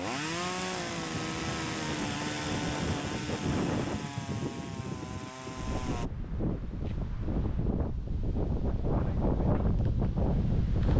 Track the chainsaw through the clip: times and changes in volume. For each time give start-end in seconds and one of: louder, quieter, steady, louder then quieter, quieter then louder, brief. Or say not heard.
0.0-6.1 quieter.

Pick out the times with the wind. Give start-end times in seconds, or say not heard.
0.0-10.9.